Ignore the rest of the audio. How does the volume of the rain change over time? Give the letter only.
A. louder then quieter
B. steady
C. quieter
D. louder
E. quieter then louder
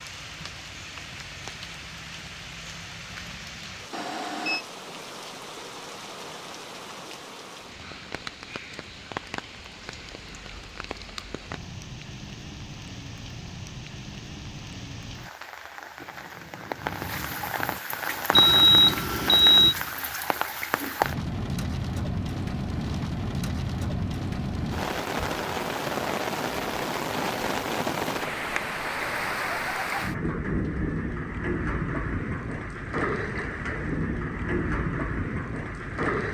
D.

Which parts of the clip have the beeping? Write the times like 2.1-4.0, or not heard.
3.9-4.7, 18.3-19.8.